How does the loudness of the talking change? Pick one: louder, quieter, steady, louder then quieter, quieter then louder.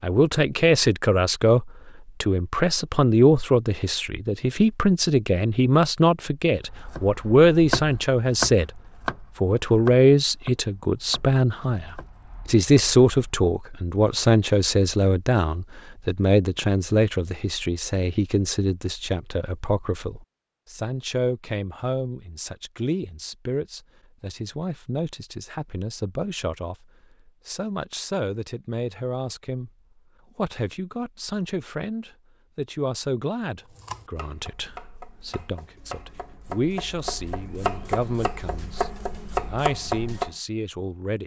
quieter.